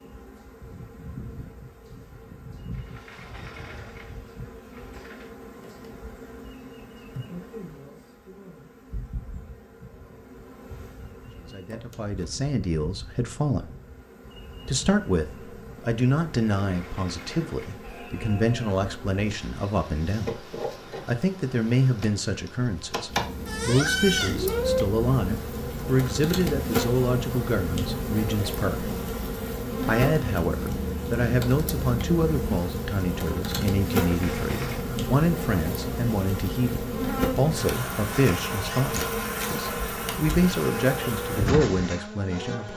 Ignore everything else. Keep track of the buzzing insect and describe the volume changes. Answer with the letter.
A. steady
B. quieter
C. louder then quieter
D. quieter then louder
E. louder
E.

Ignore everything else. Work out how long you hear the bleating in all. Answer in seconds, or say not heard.
2 s.